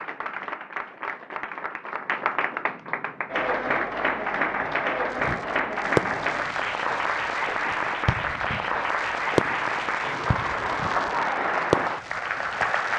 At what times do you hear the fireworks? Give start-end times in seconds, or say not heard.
5.1-12.9.